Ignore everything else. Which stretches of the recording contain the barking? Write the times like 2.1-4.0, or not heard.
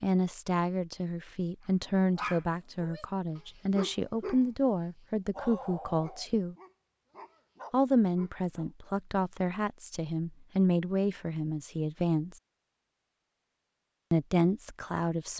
2.1-4.5, 5.3-8.7.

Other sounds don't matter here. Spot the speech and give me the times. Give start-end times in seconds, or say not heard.
0.0-6.5, 7.7-12.4, 14.1-15.3.